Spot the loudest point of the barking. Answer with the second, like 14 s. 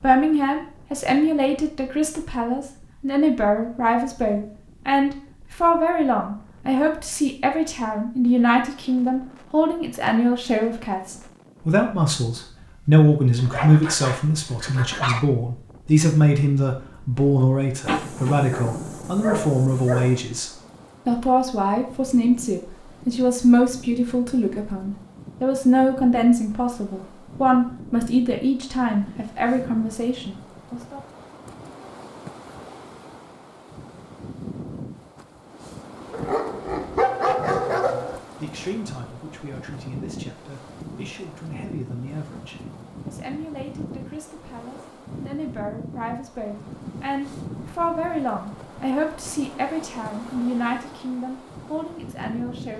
37 s.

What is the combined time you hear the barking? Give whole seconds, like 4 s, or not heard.
6 s.